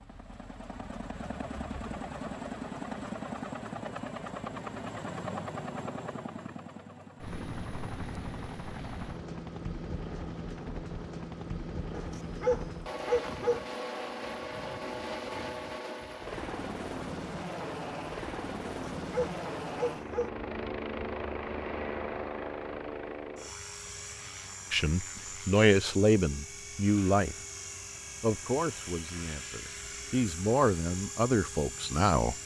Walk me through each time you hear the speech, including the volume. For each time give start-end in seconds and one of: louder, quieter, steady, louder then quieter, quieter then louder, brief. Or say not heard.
24.7-27.4 brief
28.2-32.4 quieter then louder.